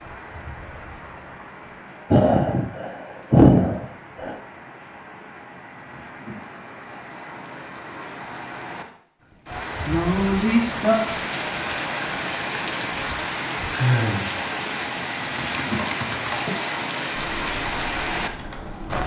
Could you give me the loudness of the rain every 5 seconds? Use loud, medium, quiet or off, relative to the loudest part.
quiet, medium, loud, loud.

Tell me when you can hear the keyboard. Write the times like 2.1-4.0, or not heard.
15.5-19.0.